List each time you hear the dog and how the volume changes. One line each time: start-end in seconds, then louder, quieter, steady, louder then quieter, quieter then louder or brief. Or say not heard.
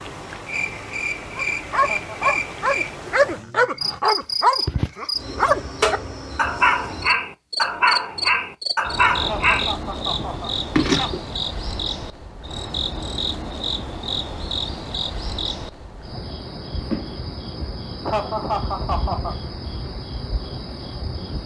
1.4-11.2 steady.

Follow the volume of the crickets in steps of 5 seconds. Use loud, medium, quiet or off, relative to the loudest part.
loud, loud, loud, medium, medium.